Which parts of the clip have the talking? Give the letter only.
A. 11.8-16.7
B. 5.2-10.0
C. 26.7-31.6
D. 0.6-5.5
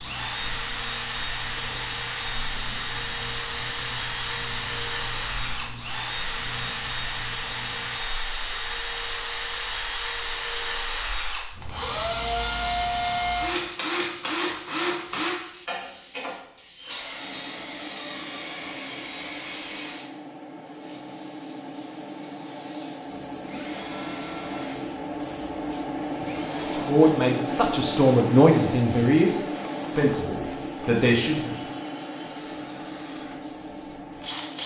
C.